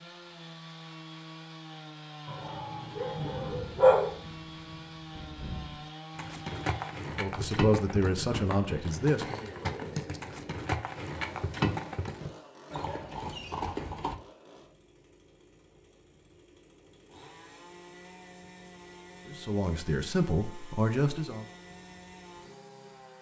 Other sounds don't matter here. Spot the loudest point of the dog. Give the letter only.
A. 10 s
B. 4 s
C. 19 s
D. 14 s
B.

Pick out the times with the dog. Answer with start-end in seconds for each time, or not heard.
2.2-4.1.